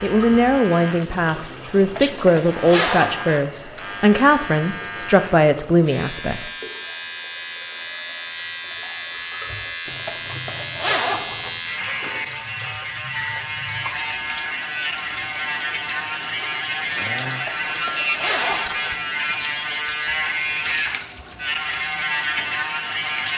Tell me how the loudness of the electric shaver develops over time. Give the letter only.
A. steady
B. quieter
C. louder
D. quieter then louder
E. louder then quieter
C.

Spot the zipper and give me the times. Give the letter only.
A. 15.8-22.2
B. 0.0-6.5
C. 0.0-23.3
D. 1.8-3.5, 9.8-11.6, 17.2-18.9
D.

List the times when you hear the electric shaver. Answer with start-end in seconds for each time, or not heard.
0.0-23.3.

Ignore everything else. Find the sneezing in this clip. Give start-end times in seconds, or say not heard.
1.3-2.2, 16.9-17.6.